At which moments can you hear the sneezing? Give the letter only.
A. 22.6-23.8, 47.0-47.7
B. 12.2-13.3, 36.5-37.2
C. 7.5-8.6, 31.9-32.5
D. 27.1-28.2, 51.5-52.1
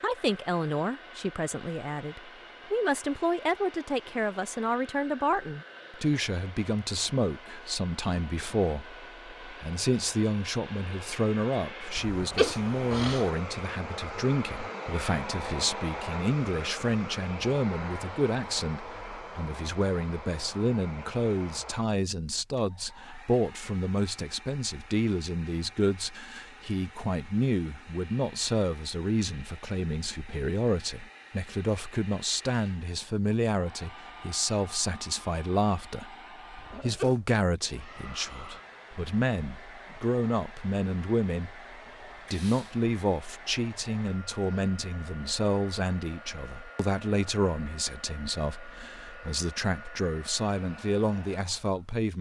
B.